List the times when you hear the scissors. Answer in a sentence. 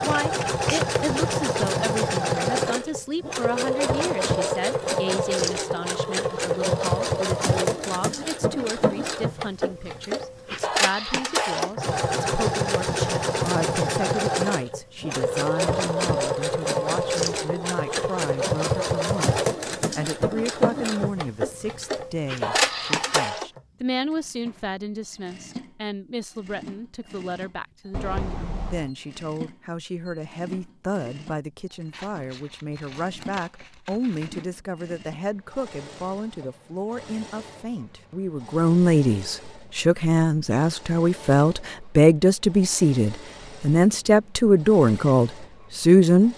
You can hear the scissors from 0.1 to 1.1 s, from 27.9 to 28.9 s and from 31.9 to 34.5 s.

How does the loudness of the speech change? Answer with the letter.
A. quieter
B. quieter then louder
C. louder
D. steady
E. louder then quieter
C.